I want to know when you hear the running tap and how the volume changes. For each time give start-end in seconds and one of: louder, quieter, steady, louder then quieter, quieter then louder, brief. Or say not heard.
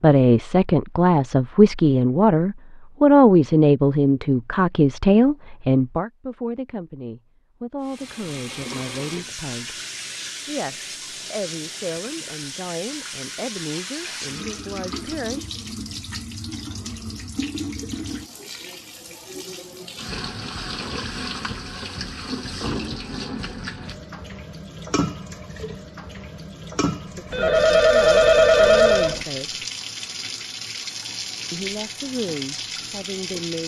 7.8-33.6 steady.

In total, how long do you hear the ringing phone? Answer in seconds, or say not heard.
2 s.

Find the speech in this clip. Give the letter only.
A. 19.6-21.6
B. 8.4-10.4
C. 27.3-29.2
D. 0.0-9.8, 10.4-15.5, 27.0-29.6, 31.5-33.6
D.